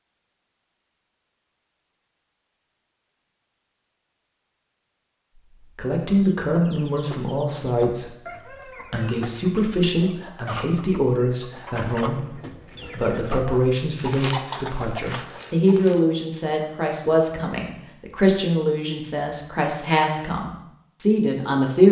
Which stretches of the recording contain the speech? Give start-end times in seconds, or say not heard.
5.5-21.8.